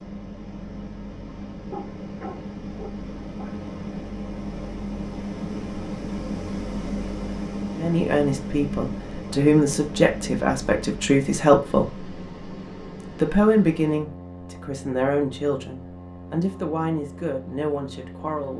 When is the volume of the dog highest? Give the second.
2 s.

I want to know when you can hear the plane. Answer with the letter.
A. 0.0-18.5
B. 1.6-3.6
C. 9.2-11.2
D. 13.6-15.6
A.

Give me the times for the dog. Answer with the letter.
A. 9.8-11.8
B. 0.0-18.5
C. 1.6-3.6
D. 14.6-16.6
C.